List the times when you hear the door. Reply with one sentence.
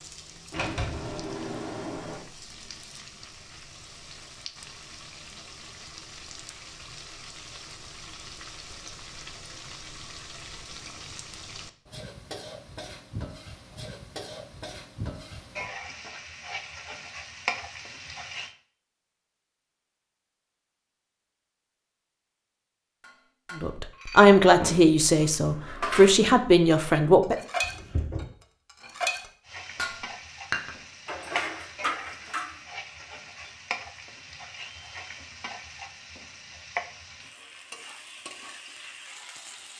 You can hear the door from 0.5 to 2.2 s and from 27.6 to 28.3 s.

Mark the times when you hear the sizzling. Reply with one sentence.
You can hear the sizzling from 0.0 to 18.6 s and from 29.4 to 39.7 s.